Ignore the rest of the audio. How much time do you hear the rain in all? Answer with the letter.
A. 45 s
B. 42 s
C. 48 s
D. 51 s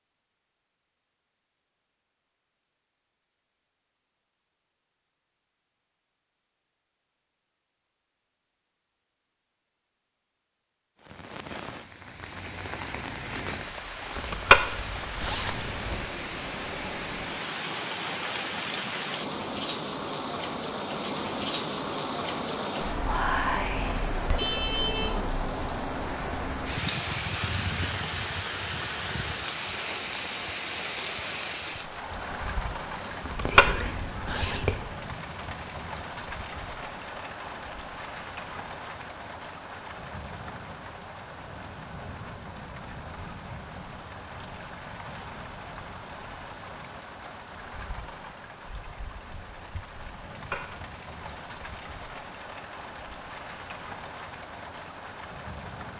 A.